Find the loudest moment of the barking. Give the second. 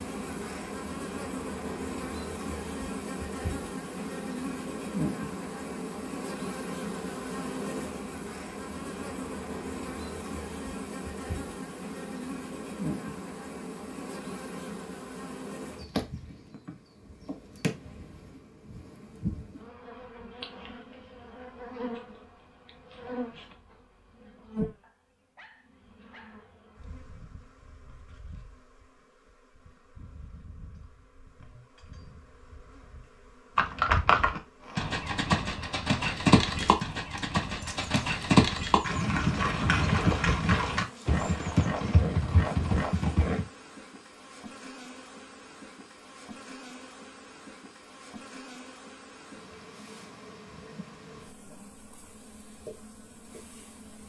26 s.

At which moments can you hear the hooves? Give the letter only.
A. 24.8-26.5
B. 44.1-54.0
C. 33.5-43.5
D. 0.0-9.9
C.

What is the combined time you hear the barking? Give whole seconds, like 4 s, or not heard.
2 s.